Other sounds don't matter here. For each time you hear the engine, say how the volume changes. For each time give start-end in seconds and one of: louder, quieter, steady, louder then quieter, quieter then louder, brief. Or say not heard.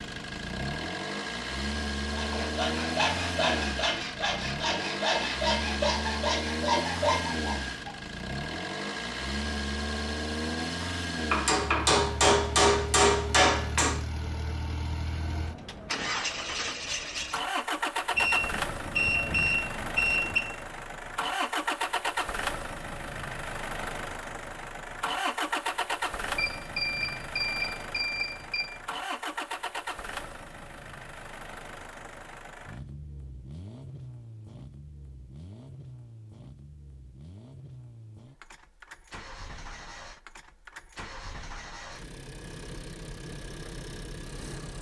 0.0-44.7 quieter.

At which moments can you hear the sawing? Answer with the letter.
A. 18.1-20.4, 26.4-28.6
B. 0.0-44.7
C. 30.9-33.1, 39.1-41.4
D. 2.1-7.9
D.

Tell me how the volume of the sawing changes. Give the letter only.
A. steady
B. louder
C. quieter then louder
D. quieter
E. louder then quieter
A.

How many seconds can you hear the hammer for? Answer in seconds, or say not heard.
3 s.